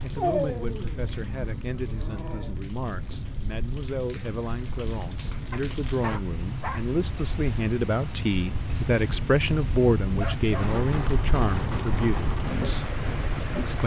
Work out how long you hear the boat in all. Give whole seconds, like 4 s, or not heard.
14 s.